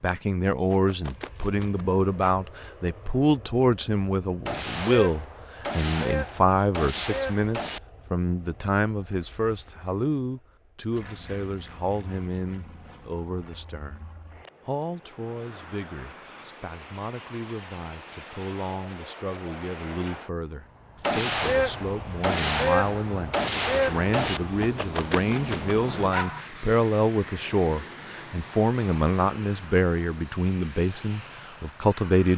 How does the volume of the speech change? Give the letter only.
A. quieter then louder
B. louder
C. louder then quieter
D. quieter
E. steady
A.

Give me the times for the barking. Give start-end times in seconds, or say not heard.
0.7-2.4, 24.6-26.4.